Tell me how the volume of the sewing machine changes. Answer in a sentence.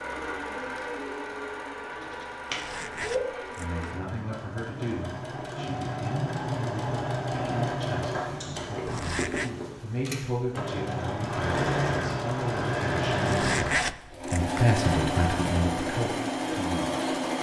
The volume of the sewing machine goes up.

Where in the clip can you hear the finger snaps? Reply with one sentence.
You can hear the finger snaps from 2.0 to 3.2 s.